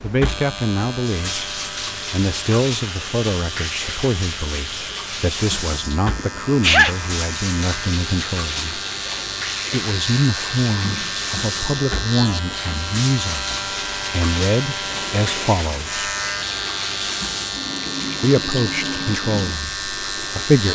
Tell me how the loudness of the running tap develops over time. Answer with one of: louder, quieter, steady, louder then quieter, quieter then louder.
steady.